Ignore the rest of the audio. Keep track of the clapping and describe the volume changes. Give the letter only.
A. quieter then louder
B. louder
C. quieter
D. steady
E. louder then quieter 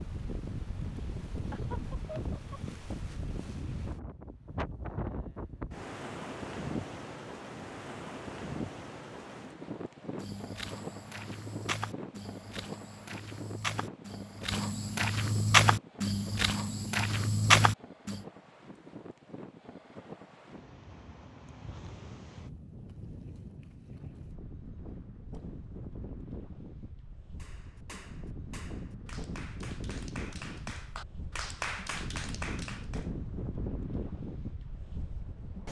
B.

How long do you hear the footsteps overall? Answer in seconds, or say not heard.
8 s.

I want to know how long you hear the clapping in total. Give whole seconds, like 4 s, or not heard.
6 s.